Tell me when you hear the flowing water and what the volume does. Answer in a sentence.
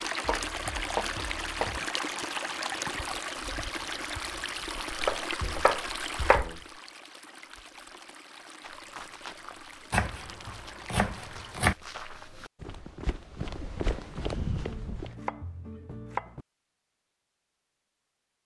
The flowing water can be heard from 0.0 to 11.7 s, getting quieter.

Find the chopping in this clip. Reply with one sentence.
You can hear the chopping from 0.2 to 1.8 s, from 4.9 to 6.6 s, from 9.9 to 11.8 s and from 14.7 to 16.4 s.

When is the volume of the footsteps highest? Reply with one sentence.
The volume of the footsteps peaks at 14 seconds.